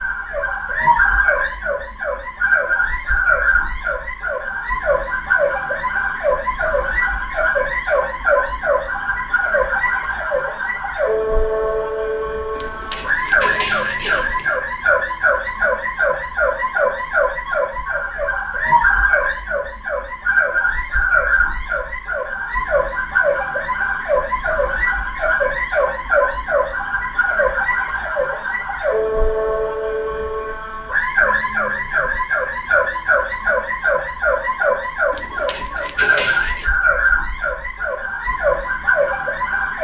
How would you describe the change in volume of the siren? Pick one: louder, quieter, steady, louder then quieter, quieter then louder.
steady.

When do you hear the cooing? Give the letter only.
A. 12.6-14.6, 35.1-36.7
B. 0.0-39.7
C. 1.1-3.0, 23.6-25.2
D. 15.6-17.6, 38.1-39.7
A.